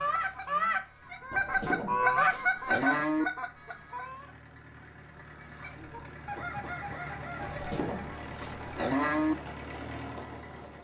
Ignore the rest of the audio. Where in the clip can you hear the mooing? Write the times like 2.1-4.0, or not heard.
1.3-3.2, 7.4-9.3.